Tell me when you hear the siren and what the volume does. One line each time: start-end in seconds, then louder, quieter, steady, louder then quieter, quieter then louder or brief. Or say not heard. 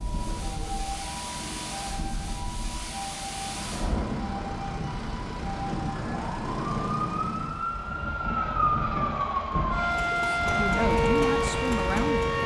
0.0-12.4 louder.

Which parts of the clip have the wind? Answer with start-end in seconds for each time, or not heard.
0.0-12.4.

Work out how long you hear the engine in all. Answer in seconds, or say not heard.
9 s.